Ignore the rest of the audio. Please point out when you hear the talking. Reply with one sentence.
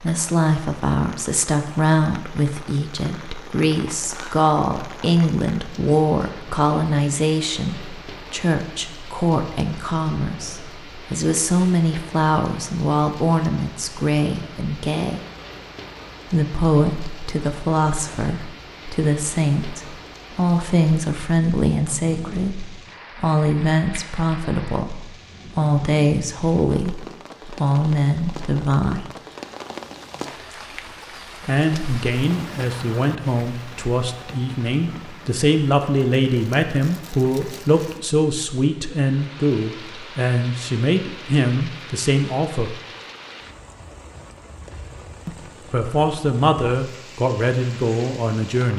The talking can be heard from 0.0 to 15.2 s, from 16.3 to 29.1 s, from 31.4 to 42.8 s and from 45.2 to 48.7 s.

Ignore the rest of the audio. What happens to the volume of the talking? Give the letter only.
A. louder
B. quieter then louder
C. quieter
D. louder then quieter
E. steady
E.